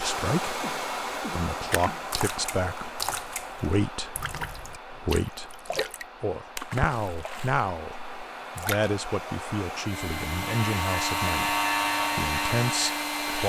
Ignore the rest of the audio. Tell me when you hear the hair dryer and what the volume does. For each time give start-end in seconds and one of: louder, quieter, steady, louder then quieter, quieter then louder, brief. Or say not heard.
0.0-13.4 quieter then louder.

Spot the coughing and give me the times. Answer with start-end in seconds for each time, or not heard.
0.6-2.0.